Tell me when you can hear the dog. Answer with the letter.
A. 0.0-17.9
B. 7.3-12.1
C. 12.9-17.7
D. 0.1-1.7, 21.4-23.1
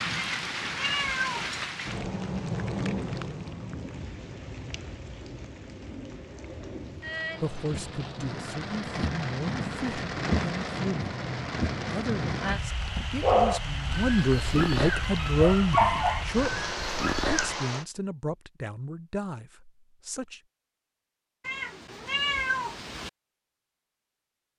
C.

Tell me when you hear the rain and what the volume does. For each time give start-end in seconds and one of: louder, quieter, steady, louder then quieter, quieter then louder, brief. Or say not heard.
0.0-17.9 quieter then louder.